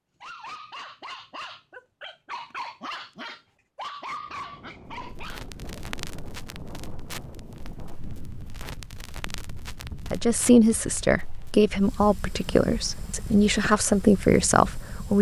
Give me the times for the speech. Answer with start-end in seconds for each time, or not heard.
10.1-15.1.